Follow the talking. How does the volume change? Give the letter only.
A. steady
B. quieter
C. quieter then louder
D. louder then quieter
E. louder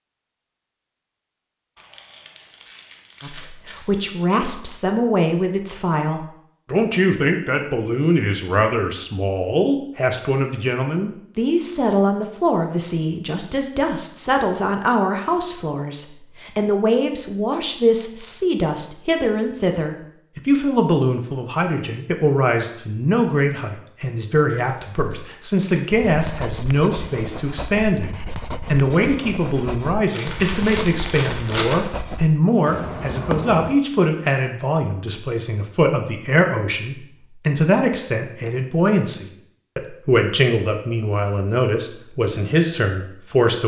A.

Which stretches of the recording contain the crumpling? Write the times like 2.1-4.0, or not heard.
1.8-4.0, 24.4-25.9, 30.1-31.9.